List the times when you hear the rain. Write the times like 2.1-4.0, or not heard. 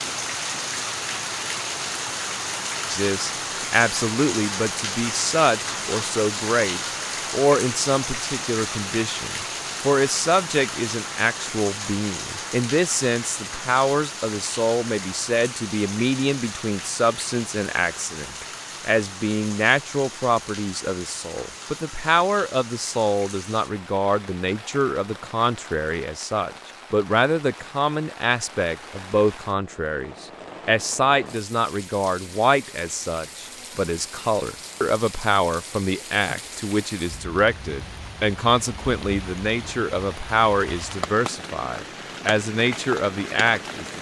0.0-43.9.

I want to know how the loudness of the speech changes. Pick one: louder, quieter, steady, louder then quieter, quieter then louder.
steady.